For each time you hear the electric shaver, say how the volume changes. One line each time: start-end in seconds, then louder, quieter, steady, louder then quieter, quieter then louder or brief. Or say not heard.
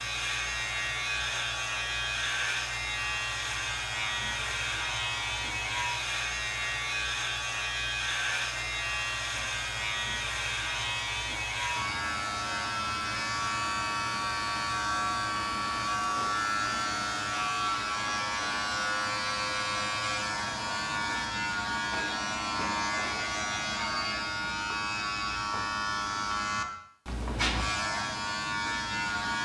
0.0-29.4 steady.